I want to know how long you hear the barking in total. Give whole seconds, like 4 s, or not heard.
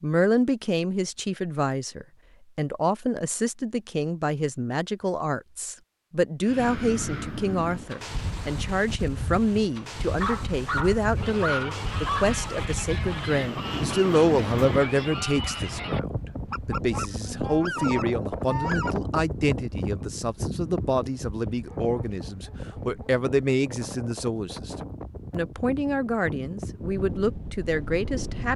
4 s.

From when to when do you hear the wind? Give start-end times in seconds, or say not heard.
6.4-28.5.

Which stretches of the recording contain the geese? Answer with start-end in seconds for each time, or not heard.
11.2-19.1.